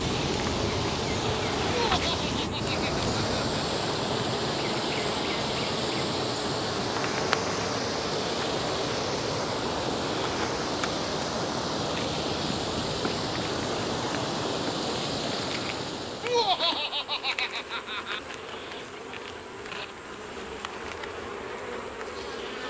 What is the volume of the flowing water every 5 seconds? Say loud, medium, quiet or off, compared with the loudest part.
loud, loud, loud, loud, off.